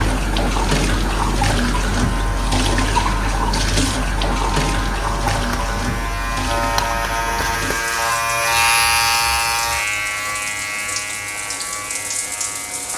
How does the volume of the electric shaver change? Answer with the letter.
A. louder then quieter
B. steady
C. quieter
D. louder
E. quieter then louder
A.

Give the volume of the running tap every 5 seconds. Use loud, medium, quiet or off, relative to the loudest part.
loud, medium, medium.